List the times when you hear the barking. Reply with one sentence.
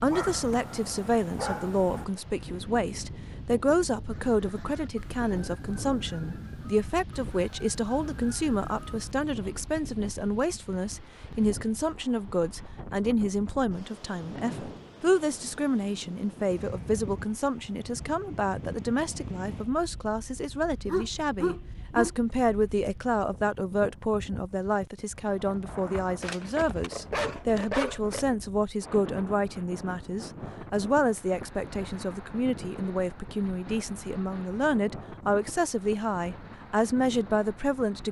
The barking can be heard from 0.1 to 2.0 s, from 20.9 to 22.1 s and from 26.2 to 28.2 s.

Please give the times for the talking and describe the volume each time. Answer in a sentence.
The talking can be heard from 0.0 to 38.0 s, at a steady volume.